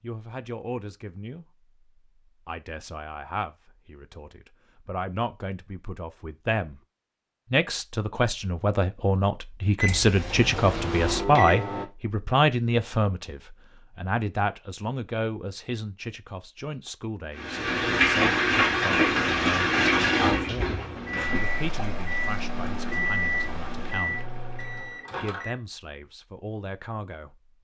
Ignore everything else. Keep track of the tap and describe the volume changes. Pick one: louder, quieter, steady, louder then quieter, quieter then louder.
quieter.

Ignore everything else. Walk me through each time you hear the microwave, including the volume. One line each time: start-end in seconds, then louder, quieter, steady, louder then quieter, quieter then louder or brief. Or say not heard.
9.8-11.8 brief
20.9-25.6 louder then quieter.